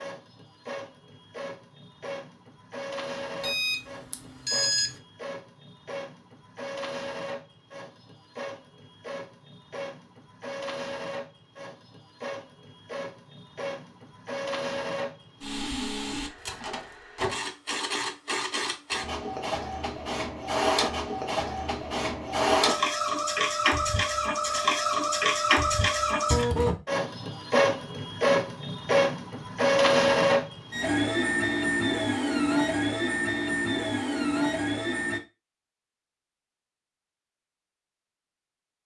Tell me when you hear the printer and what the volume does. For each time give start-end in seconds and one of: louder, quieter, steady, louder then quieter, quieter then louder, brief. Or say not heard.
0.0-35.2 louder.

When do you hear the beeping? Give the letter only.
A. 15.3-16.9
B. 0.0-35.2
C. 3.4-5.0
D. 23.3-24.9
C.